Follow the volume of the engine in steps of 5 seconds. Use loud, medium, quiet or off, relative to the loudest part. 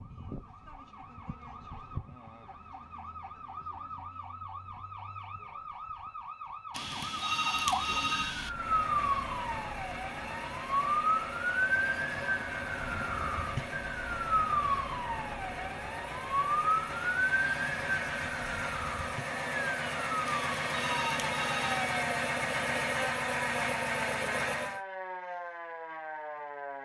off, medium, medium, medium, loud, off.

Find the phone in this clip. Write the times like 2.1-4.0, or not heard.
6.7-8.5, 20.2-22.0.